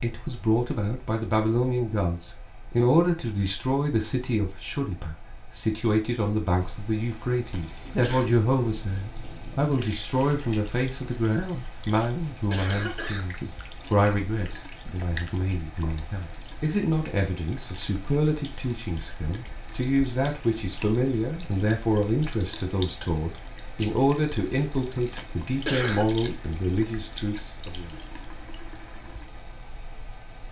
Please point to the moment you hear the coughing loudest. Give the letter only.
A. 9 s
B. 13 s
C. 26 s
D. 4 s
C.